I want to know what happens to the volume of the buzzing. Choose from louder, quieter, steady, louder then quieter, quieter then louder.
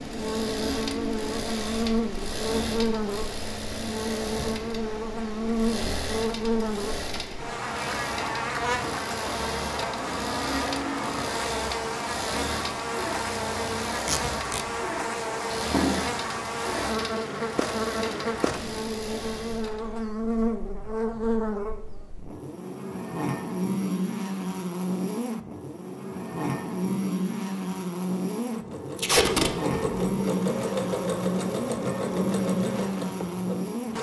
steady.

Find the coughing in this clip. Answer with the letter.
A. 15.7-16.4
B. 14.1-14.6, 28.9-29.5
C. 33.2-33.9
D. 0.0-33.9
A.